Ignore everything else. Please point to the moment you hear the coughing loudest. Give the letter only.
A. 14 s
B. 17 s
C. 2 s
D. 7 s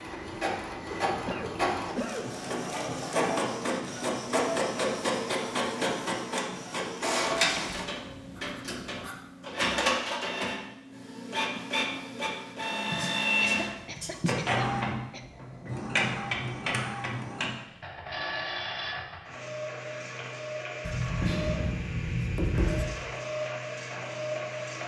C.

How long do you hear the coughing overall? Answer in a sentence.
The coughing can be heard for 3 seconds in total.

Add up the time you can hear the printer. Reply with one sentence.
The printer can be heard for 25 seconds in total.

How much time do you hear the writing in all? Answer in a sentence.
You can hear the writing for 7 seconds altogether.